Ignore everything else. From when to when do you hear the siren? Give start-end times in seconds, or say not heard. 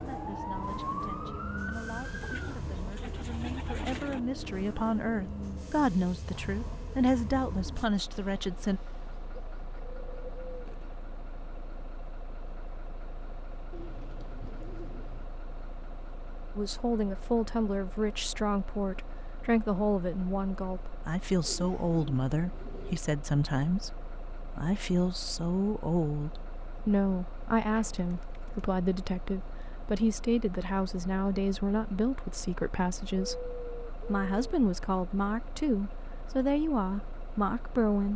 0.0-2.6.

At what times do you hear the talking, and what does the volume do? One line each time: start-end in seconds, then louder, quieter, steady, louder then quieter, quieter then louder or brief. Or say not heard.
0.0-8.8 louder
16.6-38.1 steady.